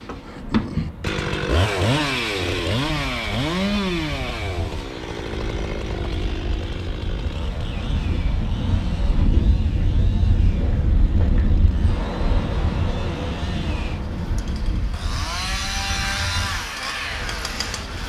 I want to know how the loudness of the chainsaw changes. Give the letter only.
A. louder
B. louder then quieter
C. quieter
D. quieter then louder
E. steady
D.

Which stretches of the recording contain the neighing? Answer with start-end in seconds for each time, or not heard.
not heard.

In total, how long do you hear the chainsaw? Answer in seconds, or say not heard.
18 s.